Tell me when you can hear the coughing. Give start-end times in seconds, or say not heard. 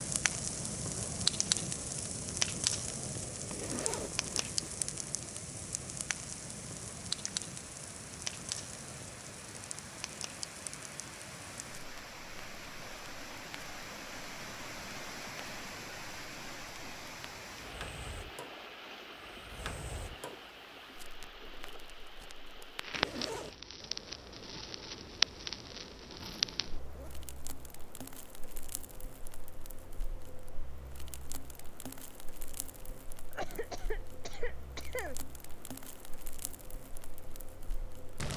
33.3-35.1.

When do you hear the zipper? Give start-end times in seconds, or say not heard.
3.5-4.8, 22.9-23.6, 26.1-27.3.